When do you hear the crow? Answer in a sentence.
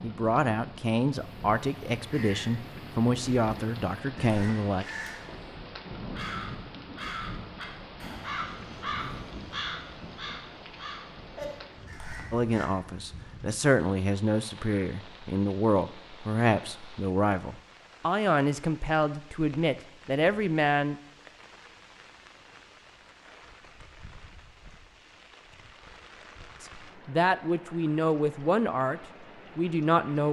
The crow can be heard from 1.1 to 12.7 s.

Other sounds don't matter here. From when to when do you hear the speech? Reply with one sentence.
The speech can be heard from 0.0 to 4.8 s, from 12.3 to 21.0 s and from 26.6 to 30.2 s.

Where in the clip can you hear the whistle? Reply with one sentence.
You can't hear the whistle here.